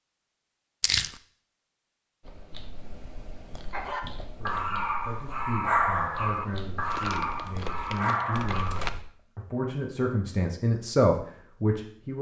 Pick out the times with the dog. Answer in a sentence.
You can hear the dog from 3.7 to 8.8 s.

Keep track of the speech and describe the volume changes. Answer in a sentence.
The volume of the speech goes up.